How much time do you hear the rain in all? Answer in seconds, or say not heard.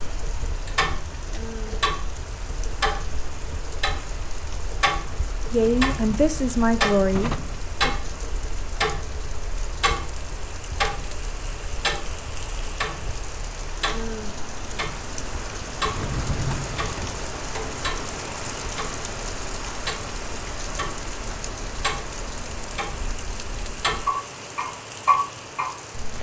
26 s.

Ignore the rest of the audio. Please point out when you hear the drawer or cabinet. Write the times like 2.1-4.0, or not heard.
5.5-7.6, 15.8-17.2.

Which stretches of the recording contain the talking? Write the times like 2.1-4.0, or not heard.
5.5-8.0.